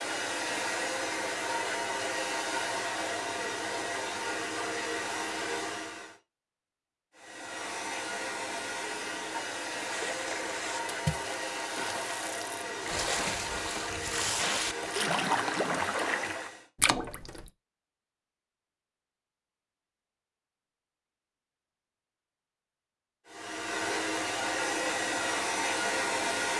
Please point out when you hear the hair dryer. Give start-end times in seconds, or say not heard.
0.0-6.2, 7.2-16.7, 23.2-26.5.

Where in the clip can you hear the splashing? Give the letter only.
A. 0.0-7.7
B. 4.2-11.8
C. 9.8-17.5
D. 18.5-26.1
C.